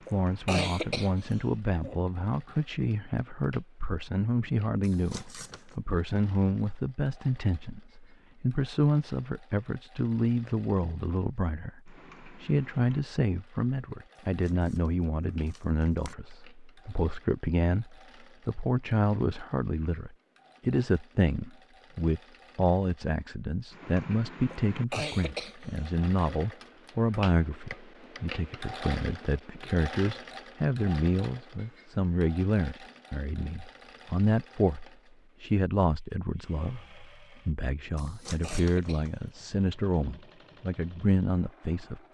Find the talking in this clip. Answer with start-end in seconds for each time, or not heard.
0.1-42.0.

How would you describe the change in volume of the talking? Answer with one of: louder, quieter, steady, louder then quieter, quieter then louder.
steady.